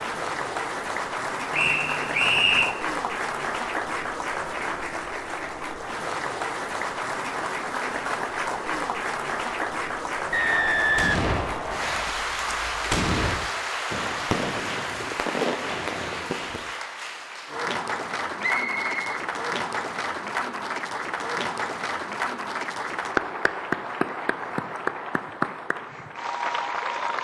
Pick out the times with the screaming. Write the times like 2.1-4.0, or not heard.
not heard.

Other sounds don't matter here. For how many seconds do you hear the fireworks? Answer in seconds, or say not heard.
6 s.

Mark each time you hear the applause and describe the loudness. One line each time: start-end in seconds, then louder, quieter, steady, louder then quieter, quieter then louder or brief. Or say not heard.
0.0-27.1 steady.